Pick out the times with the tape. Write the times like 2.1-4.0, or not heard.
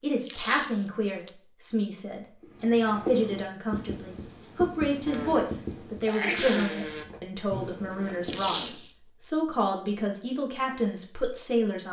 0.2-1.3, 8.2-8.9.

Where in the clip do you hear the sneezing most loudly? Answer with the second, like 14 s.
6 s.